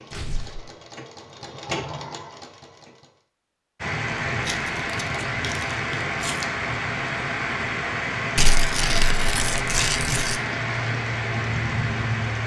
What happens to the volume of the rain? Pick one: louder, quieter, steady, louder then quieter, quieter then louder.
steady.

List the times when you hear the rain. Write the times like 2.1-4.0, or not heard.
3.8-12.4.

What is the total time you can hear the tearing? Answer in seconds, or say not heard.
5 s.